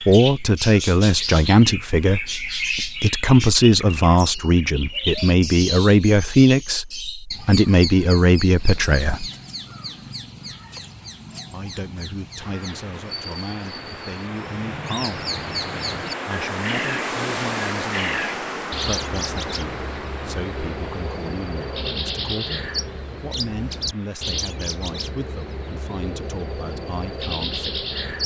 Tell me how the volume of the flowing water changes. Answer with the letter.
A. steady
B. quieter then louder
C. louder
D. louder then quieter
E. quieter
D.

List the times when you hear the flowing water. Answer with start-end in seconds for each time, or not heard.
12.3-28.2.